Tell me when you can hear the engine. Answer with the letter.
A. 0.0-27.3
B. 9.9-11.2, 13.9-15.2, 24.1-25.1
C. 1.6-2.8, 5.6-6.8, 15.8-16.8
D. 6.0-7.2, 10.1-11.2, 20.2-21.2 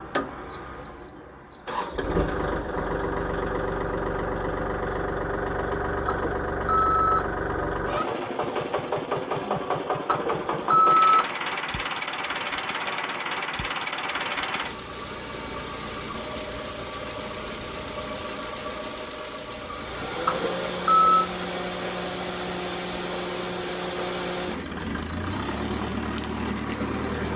A.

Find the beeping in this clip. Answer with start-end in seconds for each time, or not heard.
6.0-7.2, 10.1-11.2, 20.2-21.2.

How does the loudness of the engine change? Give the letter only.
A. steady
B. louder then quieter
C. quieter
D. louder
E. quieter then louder
A.